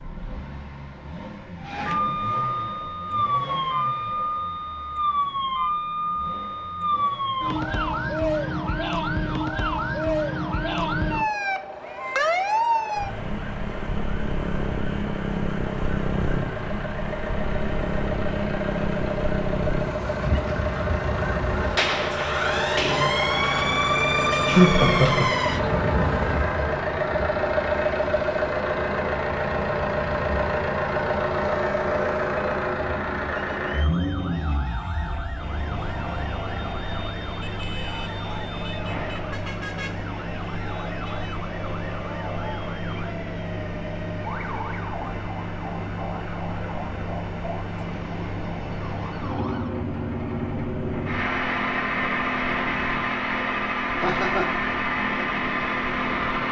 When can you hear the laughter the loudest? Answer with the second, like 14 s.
25 s.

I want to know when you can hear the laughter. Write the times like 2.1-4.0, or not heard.
24.5-25.4, 54.0-54.6.